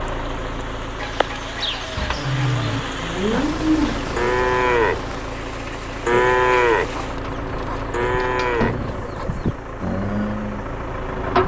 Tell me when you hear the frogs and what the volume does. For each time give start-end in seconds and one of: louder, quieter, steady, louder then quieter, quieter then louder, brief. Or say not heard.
not heard.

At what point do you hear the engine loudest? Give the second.
11 s.